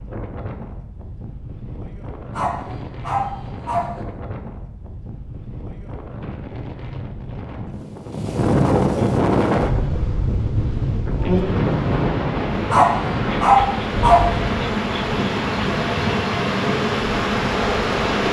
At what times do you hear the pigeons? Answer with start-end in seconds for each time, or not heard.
not heard.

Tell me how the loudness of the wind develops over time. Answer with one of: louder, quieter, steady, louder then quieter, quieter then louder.
louder then quieter.